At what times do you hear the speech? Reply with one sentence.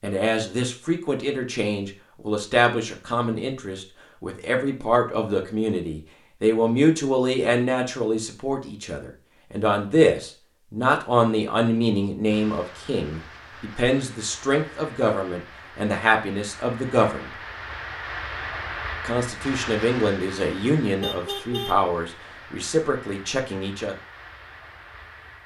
The speech can be heard from 0.0 to 17.3 s and from 19.0 to 23.9 s.